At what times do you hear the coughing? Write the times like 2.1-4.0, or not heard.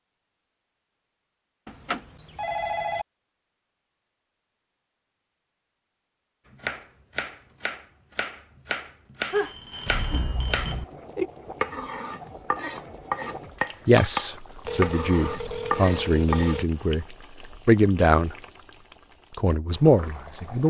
not heard.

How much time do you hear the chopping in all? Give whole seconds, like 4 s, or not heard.
10 s.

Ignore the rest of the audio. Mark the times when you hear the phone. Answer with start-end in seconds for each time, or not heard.
1.6-3.0, 9.3-10.8, 14.7-16.6.